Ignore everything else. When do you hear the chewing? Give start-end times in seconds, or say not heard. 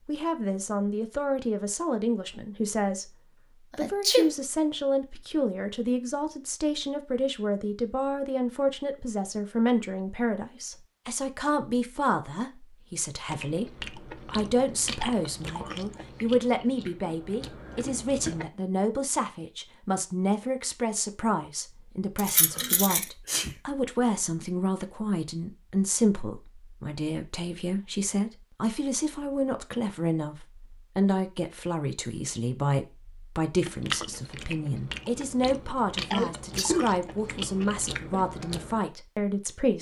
13.2-18.5, 33.6-38.8.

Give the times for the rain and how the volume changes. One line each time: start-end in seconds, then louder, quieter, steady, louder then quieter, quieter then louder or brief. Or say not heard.
not heard.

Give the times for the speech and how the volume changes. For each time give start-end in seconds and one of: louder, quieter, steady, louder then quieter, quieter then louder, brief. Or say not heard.
0.1-39.7 steady.